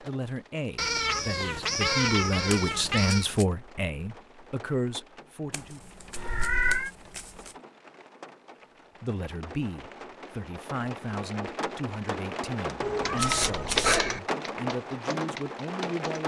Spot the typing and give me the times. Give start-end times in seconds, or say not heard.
12.9-16.2.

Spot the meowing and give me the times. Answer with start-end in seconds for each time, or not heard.
0.8-3.2, 6.2-6.9, 12.8-14.2.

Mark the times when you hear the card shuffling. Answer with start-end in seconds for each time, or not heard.
2.5-3.5, 5.5-7.5, 13.2-14.2.